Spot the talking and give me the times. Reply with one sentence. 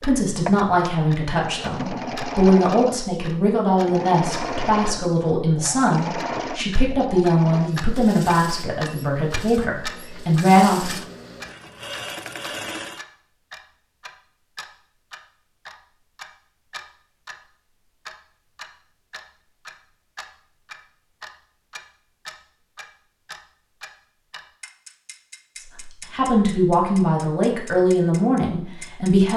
You can hear the talking from 0.0 to 10.9 s and from 25.8 to 29.3 s.